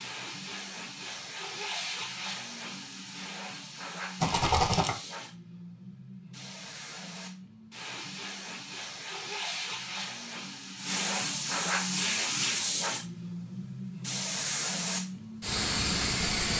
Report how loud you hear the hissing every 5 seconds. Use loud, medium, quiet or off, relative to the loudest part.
medium, medium, loud, loud.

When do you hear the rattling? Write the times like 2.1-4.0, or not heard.
4.2-5.0.